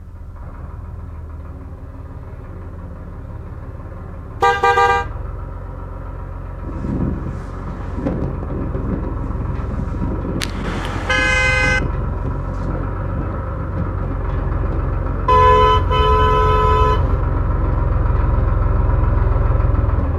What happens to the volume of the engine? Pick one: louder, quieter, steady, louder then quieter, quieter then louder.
louder.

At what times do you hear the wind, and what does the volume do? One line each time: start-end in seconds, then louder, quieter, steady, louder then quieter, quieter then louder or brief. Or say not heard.
6.6-20.1 quieter.